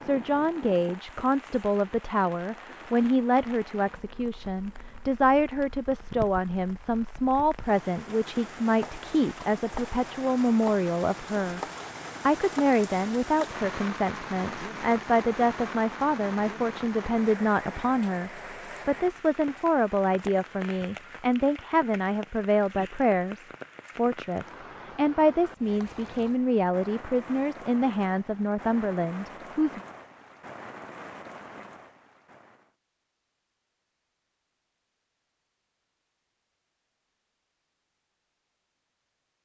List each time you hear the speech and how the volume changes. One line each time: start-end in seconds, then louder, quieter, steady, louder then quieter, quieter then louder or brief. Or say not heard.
0.0-11.6 steady
12.2-29.8 steady.